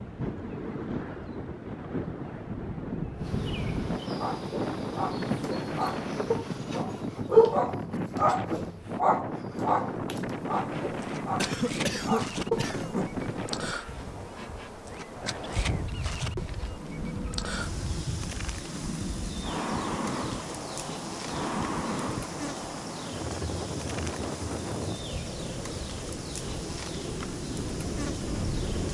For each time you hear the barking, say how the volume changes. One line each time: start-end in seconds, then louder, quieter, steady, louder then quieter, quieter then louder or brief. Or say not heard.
4.2-13.1 louder then quieter.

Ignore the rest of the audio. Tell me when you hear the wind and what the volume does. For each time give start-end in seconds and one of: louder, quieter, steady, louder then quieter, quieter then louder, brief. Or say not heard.
0.0-28.8 steady.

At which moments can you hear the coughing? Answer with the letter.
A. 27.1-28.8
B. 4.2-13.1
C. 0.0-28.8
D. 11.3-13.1
D.